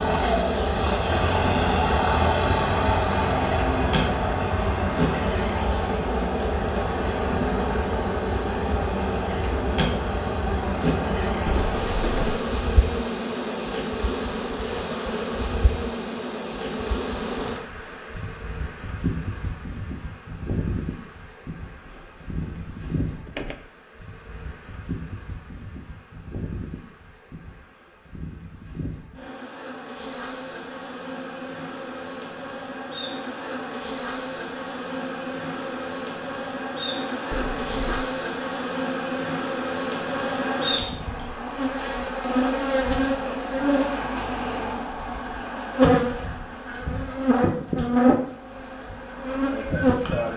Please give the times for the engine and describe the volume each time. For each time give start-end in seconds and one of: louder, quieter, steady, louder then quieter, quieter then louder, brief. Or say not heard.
0.0-12.3 quieter.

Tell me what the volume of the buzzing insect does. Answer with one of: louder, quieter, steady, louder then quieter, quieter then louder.
quieter then louder.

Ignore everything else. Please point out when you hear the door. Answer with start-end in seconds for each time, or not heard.
11.4-12.4, 21.9-23.6, 37.3-38.0.